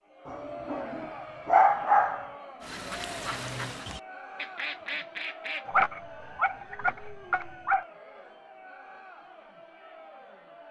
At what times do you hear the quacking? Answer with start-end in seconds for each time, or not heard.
2.6-5.7.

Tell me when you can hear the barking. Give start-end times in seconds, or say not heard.
0.2-2.3, 5.7-7.8.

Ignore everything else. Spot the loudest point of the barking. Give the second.
2 s.